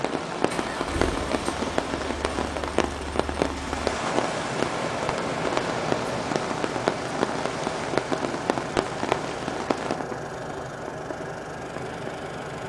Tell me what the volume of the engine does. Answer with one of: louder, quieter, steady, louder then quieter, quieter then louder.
steady.